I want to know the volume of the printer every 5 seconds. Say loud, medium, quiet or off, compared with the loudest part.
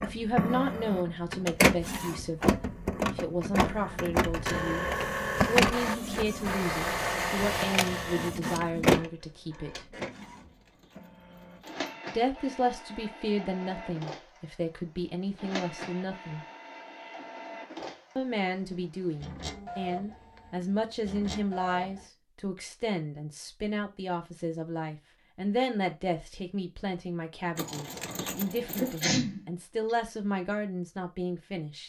loud, loud, quiet, quiet, quiet, off, off.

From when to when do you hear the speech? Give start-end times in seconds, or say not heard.
0.0-9.8, 12.1-16.4, 18.1-31.8.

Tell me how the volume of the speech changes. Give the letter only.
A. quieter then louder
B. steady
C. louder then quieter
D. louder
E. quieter
B.